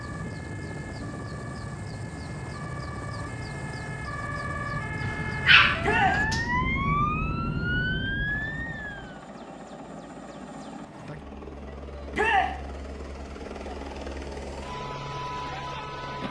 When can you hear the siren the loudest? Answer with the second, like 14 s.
7 s.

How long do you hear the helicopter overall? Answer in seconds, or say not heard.
14 s.